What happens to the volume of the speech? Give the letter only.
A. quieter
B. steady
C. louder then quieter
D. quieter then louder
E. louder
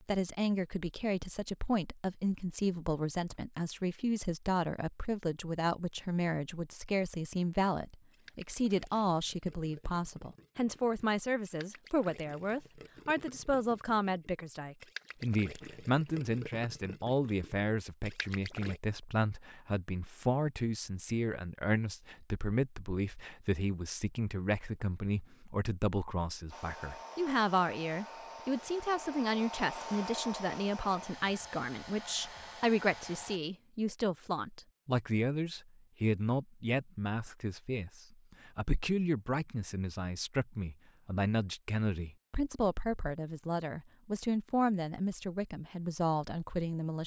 B.